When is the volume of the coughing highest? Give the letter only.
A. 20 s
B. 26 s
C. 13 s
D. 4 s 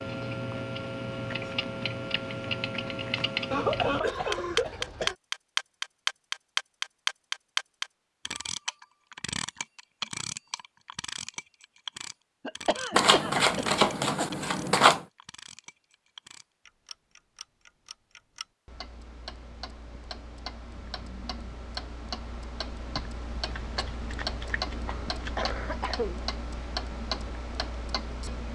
D.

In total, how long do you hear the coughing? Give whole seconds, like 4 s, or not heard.
5 s.